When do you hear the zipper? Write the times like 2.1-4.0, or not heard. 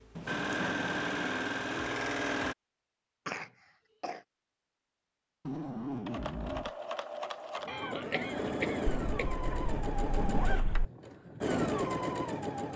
0.1-1.4, 5.5-6.7, 8.8-10.8.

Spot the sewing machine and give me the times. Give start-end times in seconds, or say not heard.
0.0-2.5, 6.0-12.7.